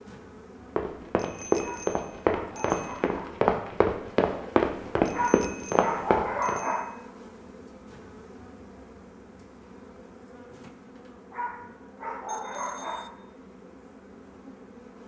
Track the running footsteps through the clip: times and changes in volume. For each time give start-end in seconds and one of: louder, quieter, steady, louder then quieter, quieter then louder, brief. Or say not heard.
0.8-6.6 steady.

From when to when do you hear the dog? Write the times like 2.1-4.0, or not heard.
1.6-3.4, 5.1-6.9, 11.3-13.1.